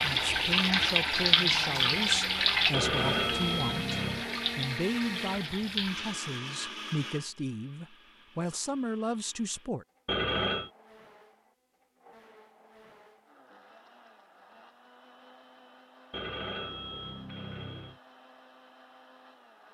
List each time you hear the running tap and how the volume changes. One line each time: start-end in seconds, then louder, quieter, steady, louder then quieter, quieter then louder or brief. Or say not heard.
0.0-6.2 quieter.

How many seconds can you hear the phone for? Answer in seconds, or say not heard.
4 s.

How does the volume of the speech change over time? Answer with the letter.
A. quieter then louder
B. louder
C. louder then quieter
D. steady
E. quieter
D.